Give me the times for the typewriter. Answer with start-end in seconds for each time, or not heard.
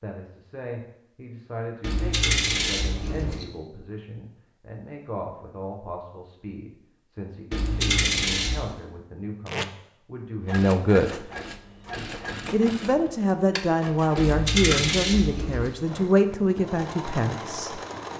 not heard.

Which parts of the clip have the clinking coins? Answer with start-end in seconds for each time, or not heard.
1.8-3.5, 7.5-8.8, 14.2-15.8.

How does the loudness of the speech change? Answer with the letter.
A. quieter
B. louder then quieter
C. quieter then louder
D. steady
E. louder
E.